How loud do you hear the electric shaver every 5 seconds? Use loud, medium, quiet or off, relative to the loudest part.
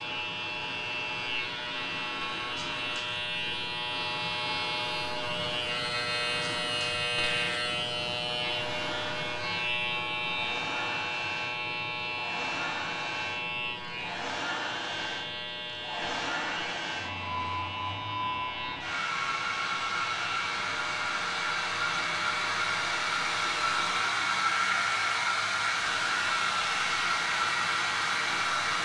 loud, loud, loud, medium, medium, medium.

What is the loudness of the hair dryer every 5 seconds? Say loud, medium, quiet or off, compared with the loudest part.
quiet, quiet, medium, medium, loud, loud.